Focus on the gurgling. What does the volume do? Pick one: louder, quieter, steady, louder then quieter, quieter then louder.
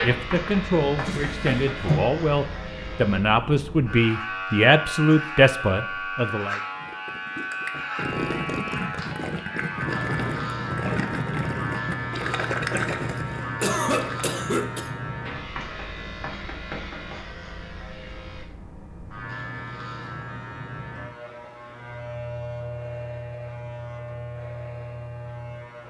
steady.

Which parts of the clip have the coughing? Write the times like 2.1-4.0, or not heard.
12.8-14.9.